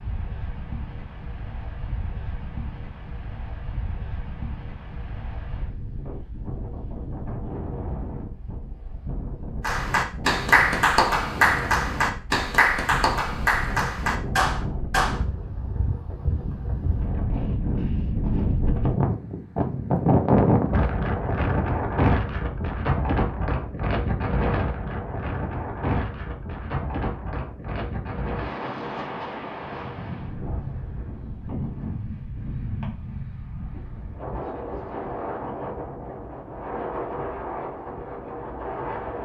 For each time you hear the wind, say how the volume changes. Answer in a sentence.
You can hear the wind from 0.0 to 39.2 s, getting louder then quieter.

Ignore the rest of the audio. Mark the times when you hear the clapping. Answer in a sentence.
You can hear the clapping from 9.6 to 15.4 s.